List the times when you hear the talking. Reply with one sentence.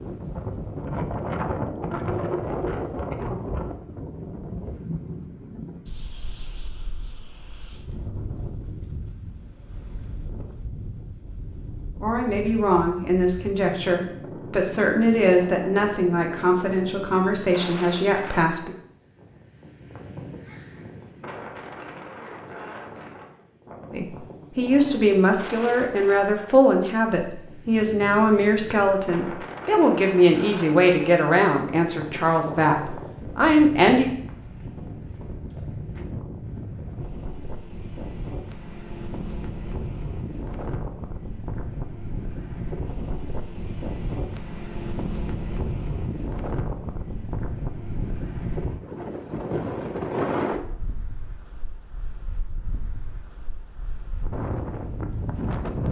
The talking can be heard from 12.0 to 18.7 s and from 23.9 to 34.1 s.